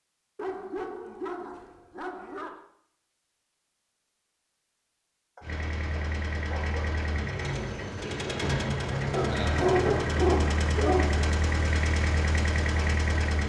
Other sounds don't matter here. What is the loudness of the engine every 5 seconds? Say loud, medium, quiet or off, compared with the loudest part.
off, loud, loud.